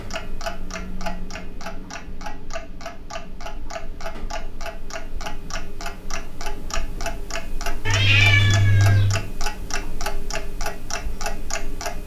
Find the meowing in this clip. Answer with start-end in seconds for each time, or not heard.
7.8-9.2.